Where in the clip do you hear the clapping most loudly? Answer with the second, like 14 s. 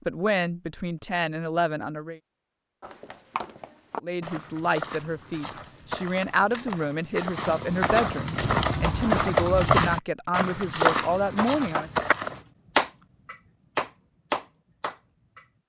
13 s.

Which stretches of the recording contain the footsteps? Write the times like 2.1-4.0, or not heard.
2.8-12.4.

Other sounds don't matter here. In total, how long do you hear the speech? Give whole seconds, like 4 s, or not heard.
10 s.